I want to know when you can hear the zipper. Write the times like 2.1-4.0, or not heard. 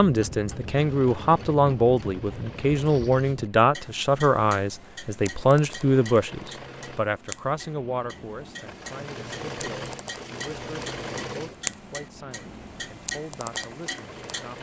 not heard.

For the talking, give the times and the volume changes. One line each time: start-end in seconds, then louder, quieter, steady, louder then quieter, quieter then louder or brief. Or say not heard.
0.0-14.5 quieter.